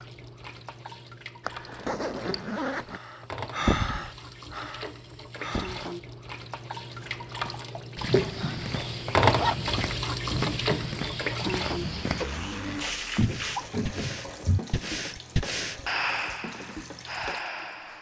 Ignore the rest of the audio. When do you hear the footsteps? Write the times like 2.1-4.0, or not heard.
7.0-14.8.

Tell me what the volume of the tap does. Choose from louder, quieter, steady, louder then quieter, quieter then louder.
louder then quieter.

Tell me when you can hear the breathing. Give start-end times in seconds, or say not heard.
2.9-5.9, 12.6-17.9.